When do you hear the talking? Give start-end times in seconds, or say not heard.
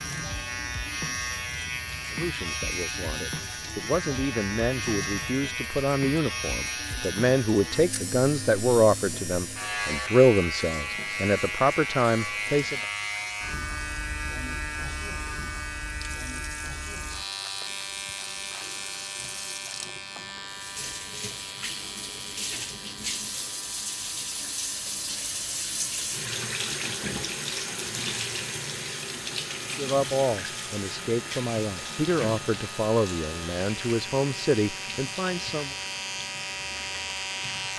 2.1-12.8, 29.8-35.8.